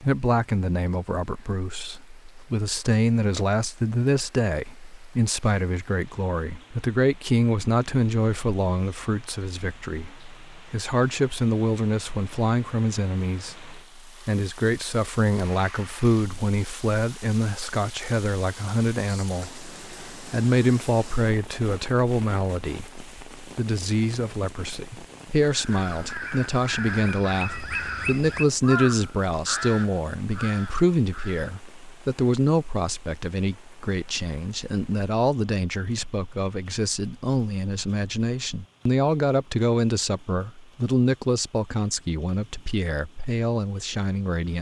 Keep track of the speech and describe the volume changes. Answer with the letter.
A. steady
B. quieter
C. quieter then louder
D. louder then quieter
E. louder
A.